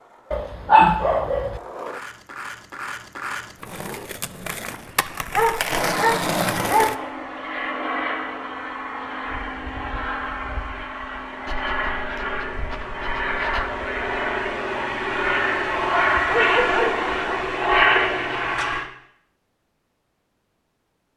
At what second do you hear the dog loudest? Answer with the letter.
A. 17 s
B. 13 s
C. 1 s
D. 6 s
C.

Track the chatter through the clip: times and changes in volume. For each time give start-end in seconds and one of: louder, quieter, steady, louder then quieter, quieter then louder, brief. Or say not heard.
not heard.